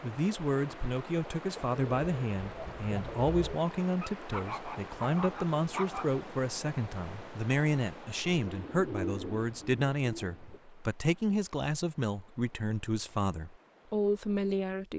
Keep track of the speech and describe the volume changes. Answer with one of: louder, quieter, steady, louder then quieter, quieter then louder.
steady.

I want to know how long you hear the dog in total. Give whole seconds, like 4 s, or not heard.
2 s.